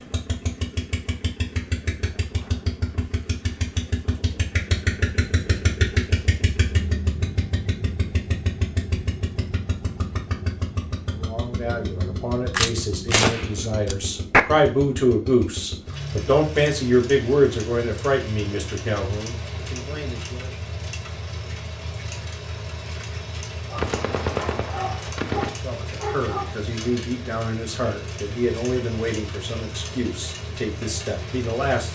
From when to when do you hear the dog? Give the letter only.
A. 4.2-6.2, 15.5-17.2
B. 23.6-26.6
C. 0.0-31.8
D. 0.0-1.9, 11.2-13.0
B.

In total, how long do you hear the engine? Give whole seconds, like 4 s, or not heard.
32 s.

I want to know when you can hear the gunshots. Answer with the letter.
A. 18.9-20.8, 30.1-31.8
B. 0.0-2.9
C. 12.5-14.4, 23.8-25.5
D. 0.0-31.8
C.